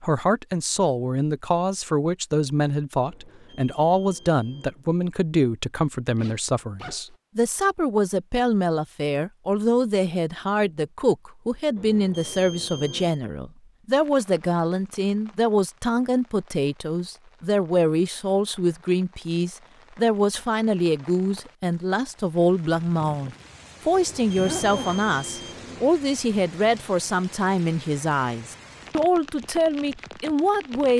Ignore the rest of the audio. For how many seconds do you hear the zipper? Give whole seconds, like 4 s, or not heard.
2 s.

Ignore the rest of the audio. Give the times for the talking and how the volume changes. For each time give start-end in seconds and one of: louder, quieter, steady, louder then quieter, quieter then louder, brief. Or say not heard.
0.0-30.9 steady.